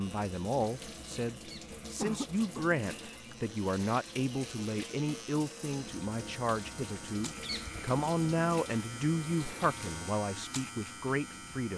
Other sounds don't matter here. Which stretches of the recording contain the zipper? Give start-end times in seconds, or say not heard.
not heard.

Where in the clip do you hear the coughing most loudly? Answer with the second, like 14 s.
2 s.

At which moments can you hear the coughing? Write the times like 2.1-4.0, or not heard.
1.4-2.6, 7.4-8.0.